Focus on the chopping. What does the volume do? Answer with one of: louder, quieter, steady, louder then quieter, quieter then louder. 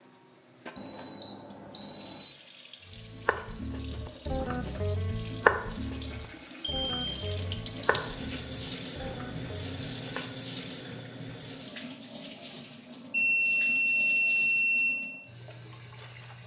louder then quieter.